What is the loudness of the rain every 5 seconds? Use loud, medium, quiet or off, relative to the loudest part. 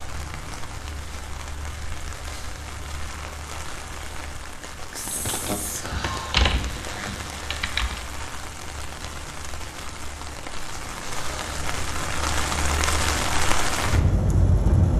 medium, medium, loud.